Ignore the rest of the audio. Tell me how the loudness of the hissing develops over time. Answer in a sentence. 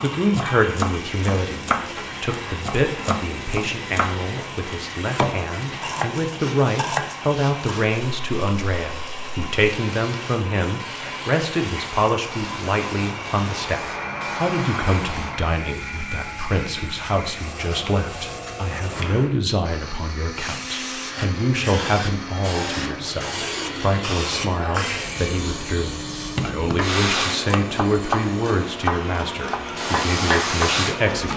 The volume of the hissing goes up.